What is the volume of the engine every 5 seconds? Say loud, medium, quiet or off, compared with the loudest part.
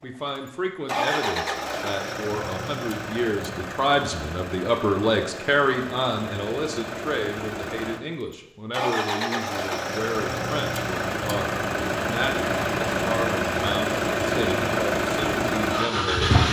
medium, medium, loud, loud.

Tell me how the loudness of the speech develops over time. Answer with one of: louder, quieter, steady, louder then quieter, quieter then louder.
louder then quieter.